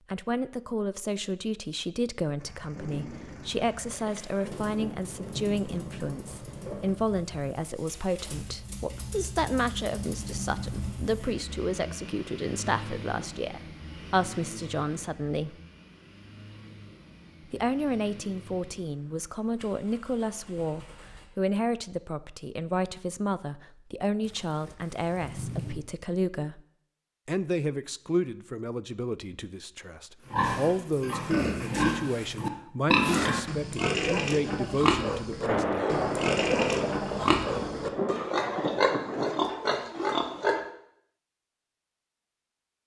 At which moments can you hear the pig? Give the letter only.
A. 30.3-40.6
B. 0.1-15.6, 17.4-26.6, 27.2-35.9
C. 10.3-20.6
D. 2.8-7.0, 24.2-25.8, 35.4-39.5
A.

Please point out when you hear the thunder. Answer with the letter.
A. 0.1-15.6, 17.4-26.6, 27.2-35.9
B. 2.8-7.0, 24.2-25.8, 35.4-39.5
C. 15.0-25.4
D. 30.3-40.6
B.